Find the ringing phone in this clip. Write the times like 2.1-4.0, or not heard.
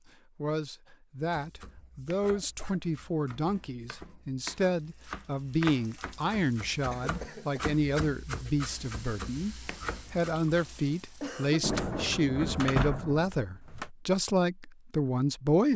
not heard.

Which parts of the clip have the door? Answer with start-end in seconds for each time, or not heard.
11.6-13.9.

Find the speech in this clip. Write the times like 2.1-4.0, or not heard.
0.1-15.7.